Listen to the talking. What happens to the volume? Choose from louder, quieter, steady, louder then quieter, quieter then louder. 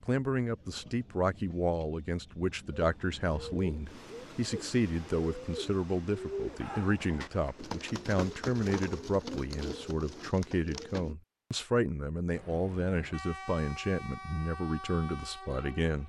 steady.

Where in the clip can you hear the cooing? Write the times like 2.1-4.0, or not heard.
2.8-11.2.